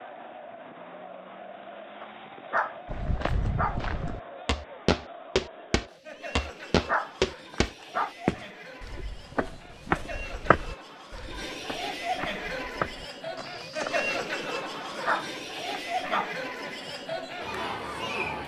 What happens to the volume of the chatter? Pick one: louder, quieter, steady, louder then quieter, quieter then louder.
louder.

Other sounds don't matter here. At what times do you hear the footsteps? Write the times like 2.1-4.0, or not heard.
2.9-14.2.